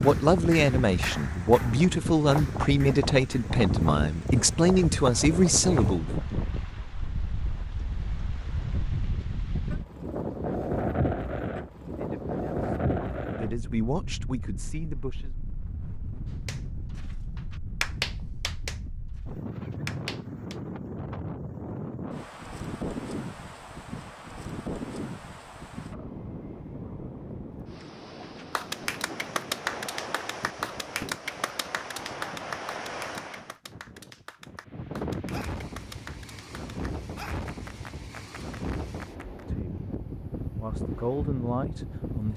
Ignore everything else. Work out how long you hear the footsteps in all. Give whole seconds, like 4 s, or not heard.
not heard.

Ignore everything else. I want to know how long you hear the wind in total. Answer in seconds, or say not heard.
42 s.